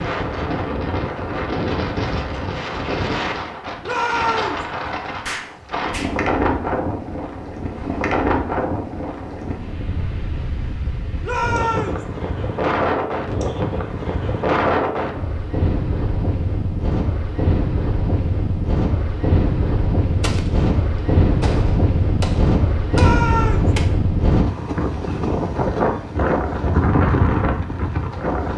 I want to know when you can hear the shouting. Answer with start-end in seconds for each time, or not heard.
3.8-4.7, 11.2-12.1, 22.9-23.7.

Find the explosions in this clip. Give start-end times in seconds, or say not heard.
5.2-6.2, 20.2-23.9.